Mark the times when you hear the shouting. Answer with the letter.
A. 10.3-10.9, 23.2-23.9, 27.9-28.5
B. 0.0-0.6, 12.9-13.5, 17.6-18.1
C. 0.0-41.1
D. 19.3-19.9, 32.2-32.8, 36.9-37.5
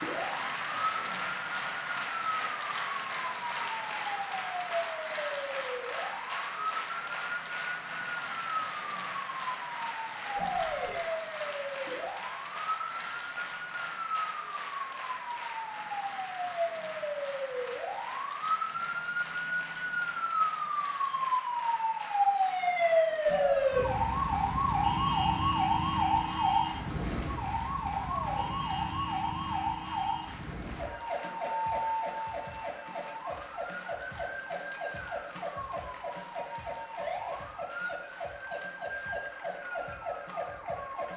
A.